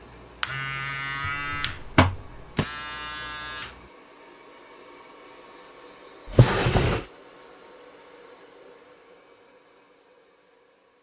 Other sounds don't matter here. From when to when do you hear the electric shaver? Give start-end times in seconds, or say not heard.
0.0-3.9.